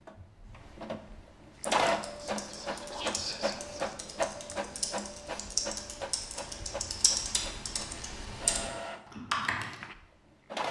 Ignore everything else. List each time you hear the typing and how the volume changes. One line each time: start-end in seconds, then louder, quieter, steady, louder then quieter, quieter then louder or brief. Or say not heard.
1.6-9.8 louder.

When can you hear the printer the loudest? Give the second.
2 s.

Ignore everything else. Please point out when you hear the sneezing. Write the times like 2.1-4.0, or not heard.
not heard.